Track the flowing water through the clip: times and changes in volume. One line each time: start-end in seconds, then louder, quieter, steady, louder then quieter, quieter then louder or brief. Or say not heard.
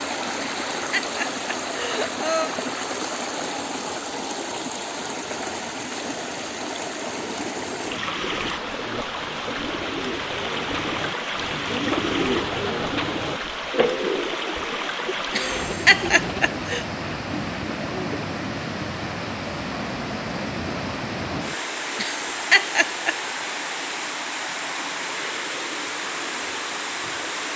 0.0-27.5 steady.